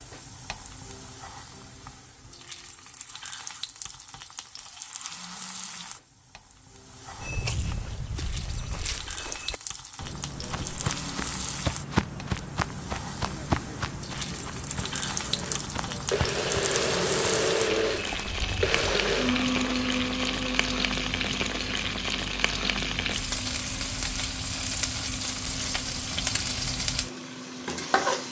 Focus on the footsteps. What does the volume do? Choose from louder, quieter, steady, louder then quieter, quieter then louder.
louder then quieter.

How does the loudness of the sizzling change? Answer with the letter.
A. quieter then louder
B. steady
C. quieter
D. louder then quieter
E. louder
E.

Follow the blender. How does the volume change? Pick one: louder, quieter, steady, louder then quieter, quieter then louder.
quieter.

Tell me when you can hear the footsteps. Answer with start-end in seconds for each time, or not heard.
7.2-19.0.